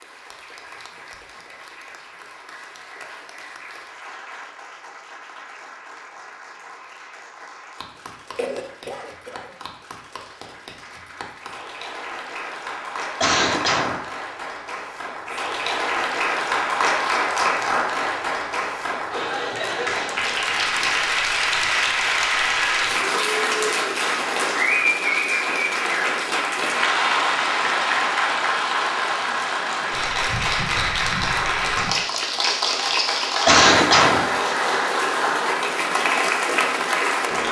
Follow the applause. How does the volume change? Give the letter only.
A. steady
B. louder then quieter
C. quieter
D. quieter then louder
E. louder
E.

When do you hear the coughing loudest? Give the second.
34 s.